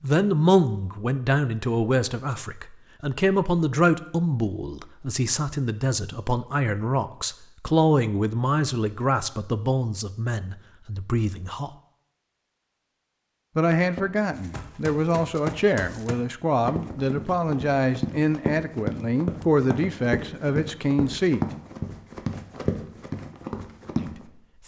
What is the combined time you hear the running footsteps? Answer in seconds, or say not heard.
10 s.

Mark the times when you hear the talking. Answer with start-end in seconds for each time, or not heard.
0.0-11.7, 13.6-21.4, 23.9-24.6.